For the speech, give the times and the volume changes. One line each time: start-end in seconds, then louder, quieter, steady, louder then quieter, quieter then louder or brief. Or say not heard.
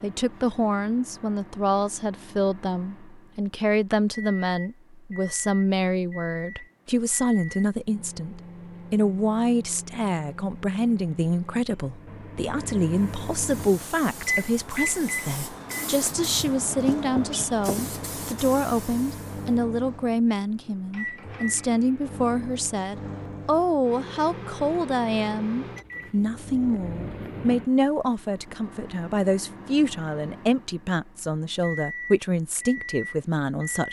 0.0-33.8 steady.